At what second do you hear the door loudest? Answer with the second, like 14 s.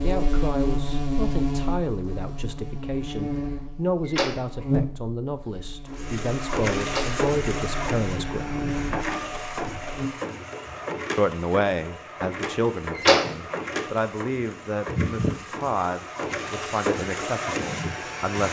13 s.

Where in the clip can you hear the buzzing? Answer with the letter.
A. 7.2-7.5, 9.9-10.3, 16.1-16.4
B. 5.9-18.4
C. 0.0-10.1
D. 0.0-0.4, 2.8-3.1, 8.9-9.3
C.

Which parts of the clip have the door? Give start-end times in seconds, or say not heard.
4.0-4.5, 6.8-7.2, 12.9-13.3.